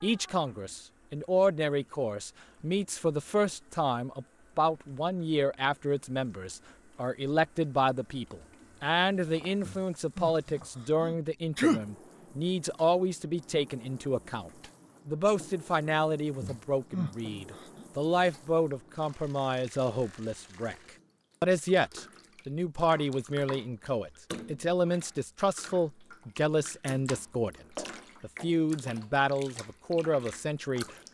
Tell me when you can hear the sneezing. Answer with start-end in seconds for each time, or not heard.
9.7-10.3, 11.0-11.8, 16.4-17.9.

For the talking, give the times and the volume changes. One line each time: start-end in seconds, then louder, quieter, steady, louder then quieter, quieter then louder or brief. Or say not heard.
0.0-20.8 steady
21.4-30.9 steady.